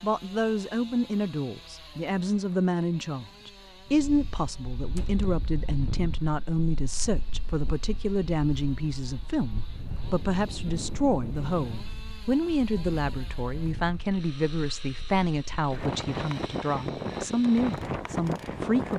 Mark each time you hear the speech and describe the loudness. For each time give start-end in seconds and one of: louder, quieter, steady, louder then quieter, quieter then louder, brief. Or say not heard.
0.0-18.9 steady.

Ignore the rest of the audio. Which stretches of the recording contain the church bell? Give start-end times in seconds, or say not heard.
not heard.